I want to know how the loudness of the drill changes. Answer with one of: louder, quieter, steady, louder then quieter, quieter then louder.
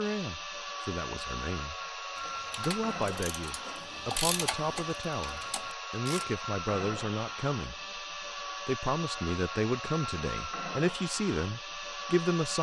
steady.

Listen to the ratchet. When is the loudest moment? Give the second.
4 s.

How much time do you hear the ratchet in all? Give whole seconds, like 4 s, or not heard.
4 s.